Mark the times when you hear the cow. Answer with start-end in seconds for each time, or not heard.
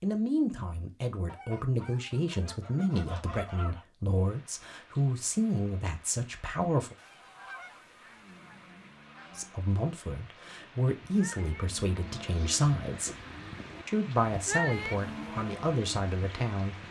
10.4-16.8.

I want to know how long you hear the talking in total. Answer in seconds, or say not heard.
14 s.